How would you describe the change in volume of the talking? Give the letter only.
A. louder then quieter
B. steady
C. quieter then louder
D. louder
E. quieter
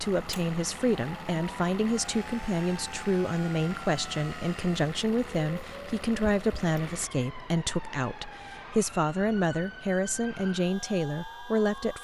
B.